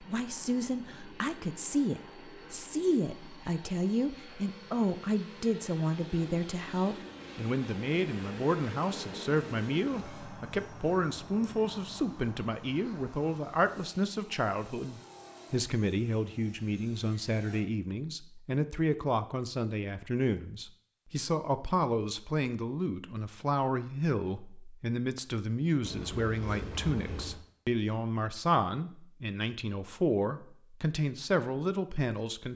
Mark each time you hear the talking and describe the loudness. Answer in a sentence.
The talking can be heard from 0.0 to 32.5 s, at a steady volume.